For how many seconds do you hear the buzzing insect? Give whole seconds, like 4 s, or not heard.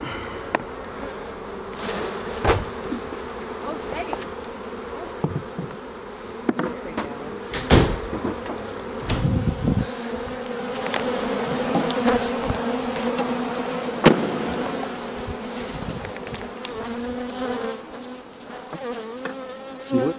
20 s.